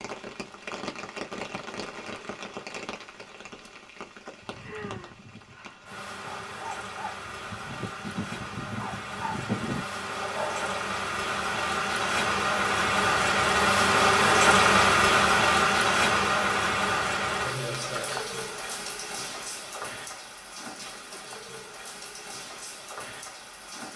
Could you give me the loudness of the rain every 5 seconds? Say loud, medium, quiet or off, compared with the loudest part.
quiet, quiet, loud, loud, quiet.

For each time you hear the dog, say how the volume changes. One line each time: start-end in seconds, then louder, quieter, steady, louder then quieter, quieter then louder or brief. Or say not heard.
4.4-10.8 louder.